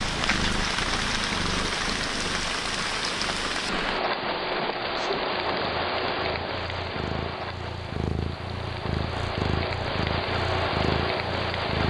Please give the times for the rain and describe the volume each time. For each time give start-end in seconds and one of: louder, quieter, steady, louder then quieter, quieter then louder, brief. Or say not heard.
0.0-11.8 quieter then louder.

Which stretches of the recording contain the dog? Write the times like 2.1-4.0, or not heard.
not heard.